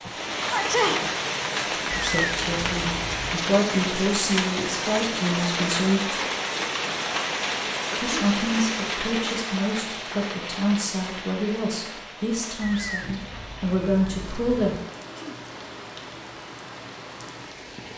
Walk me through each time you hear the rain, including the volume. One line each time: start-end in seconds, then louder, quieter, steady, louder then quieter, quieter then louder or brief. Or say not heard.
0.0-17.9 quieter.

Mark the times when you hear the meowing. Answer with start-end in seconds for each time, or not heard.
1.9-3.4, 12.6-14.7.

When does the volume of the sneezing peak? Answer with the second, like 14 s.
1 s.